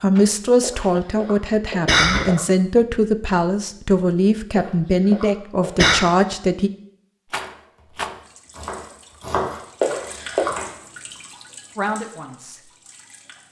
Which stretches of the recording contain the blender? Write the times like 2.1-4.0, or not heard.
not heard.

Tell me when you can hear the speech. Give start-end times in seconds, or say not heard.
0.0-6.7, 11.8-12.6.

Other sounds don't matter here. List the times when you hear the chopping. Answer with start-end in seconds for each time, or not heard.
7.3-10.8.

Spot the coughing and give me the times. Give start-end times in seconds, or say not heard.
0.6-2.4, 4.5-6.0, 9.8-10.6.